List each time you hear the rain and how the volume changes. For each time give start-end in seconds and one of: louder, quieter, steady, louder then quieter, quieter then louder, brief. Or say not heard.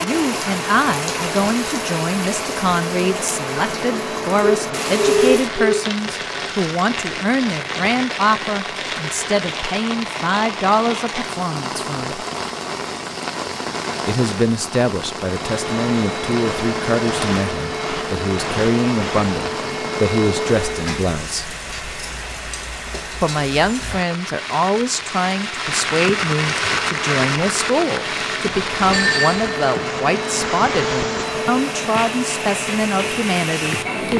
0.0-34.1 steady.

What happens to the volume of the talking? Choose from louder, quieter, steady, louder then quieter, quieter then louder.
steady.